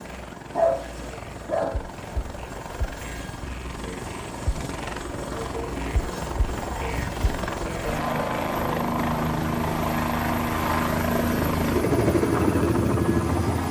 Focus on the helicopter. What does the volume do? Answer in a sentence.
The volume of the helicopter goes up.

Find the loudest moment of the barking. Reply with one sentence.
The volume of the barking peaks at 1 second.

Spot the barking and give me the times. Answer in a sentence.
The barking can be heard from 0.5 to 1.9 s.